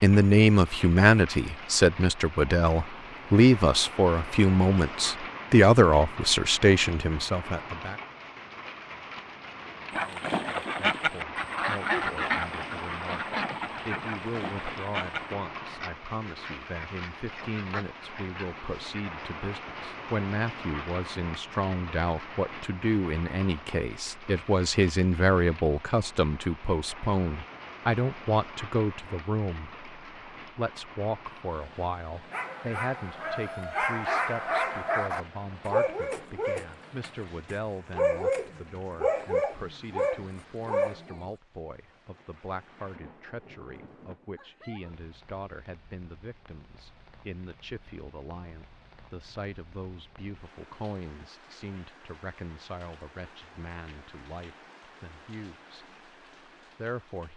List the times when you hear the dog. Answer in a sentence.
The dog can be heard from 32.3 to 41.3 s.